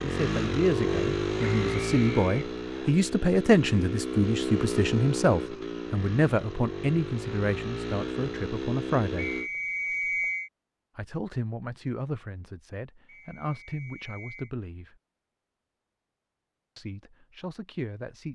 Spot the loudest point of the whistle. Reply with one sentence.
The loudest moment of the whistle is at 10 seconds.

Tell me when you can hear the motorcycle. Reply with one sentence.
You can hear the motorcycle from 0.0 to 9.5 s.